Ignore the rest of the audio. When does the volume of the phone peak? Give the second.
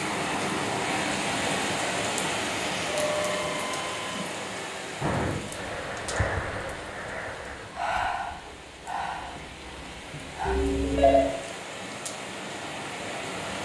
11 s.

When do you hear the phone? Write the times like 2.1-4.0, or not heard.
2.9-4.1, 10.4-11.3.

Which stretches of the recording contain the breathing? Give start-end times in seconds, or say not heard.
5.0-10.6.